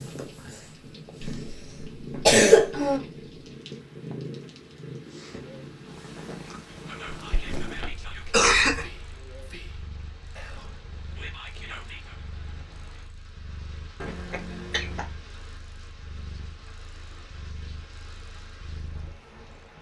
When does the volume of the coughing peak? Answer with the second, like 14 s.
2 s.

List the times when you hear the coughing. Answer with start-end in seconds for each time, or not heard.
1.2-3.0, 7.2-8.8, 14.0-15.1.